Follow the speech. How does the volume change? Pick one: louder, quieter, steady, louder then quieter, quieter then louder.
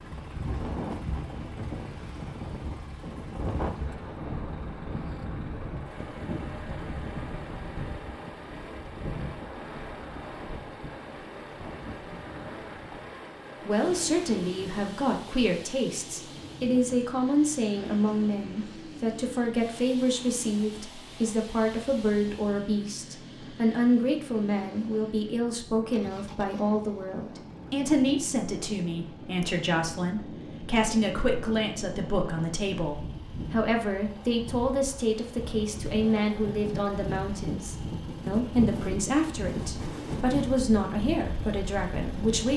steady.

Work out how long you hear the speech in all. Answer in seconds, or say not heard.
29 s.